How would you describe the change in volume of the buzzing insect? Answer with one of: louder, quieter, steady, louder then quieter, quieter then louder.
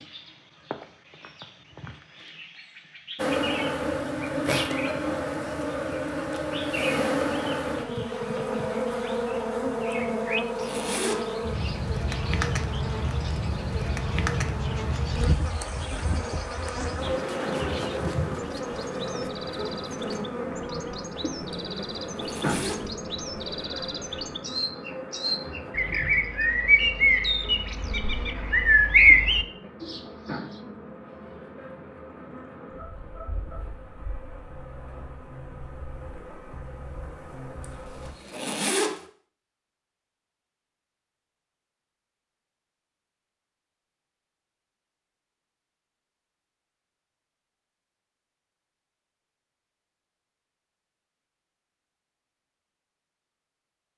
quieter.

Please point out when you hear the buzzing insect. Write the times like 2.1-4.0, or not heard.
3.1-38.1.